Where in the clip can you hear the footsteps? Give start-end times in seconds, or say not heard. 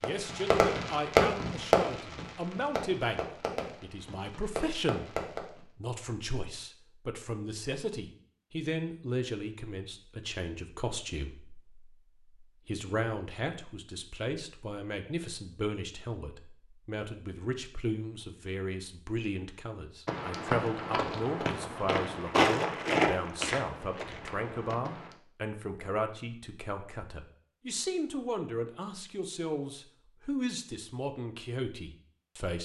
20.1-25.1.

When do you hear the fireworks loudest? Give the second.
1 s.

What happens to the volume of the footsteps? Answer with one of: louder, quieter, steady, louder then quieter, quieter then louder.
louder then quieter.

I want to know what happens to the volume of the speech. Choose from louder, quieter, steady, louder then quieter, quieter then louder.
steady.